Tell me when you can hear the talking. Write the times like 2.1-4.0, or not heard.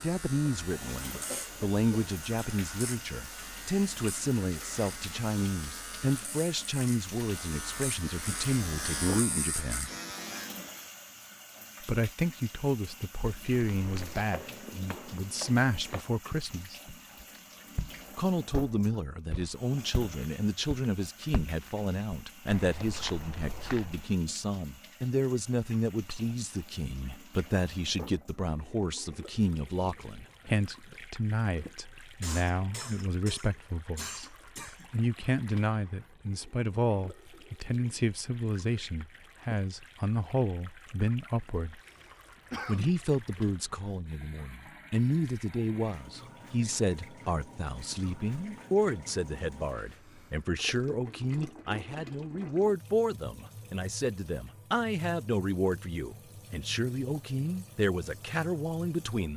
0.0-9.9, 11.8-16.8, 18.1-41.8, 42.6-59.3.